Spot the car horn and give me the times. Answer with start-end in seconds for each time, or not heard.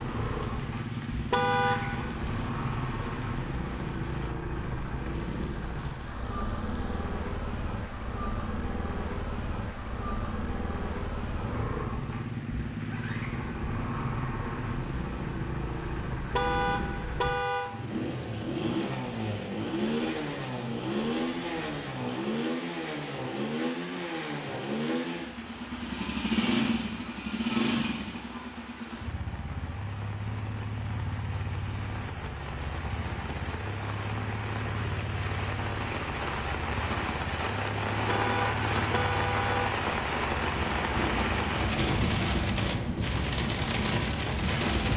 1.3-2.1, 16.3-17.7, 38.0-39.7.